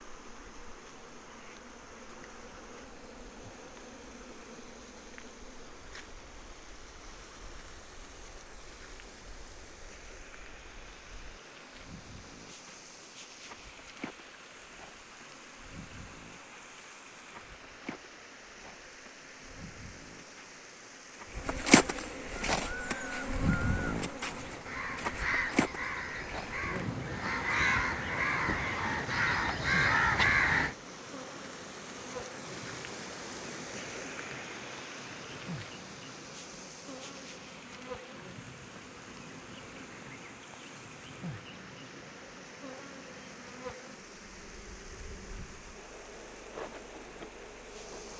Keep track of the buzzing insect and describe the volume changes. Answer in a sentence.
The volume of the buzzing insect goes up, then down.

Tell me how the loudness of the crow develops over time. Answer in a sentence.
The volume of the crow goes up.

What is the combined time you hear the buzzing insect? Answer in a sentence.
The buzzing insect can be heard for 48 seconds in total.